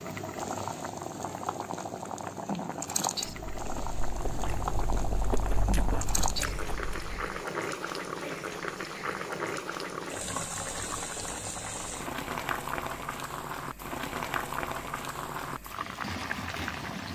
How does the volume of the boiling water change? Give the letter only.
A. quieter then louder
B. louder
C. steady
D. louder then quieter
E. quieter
C.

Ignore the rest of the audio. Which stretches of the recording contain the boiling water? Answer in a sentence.
You can hear the boiling water from 0.0 to 17.1 s.